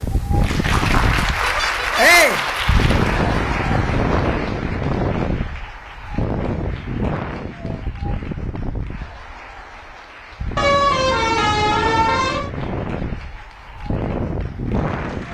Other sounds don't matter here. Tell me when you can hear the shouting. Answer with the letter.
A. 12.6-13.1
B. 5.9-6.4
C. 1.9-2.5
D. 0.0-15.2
C.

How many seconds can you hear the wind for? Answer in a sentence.
You can hear the wind for 15 seconds altogether.